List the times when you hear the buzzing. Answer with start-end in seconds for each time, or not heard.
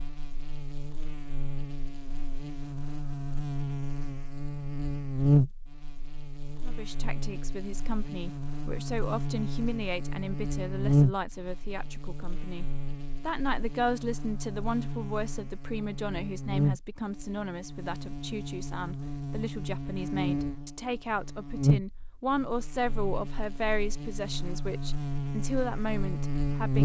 0.0-26.7.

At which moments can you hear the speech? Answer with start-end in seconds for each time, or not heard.
6.6-26.7.